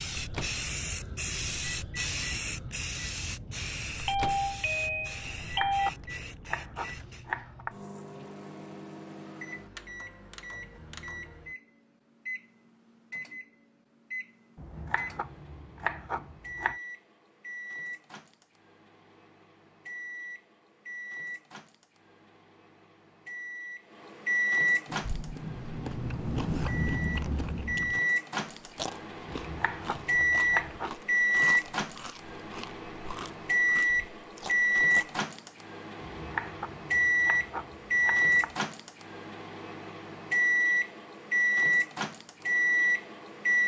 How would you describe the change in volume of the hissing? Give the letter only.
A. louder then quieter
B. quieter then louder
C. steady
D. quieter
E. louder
D.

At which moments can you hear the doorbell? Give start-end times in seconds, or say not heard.
4.0-5.9.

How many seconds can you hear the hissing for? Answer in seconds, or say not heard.
7 s.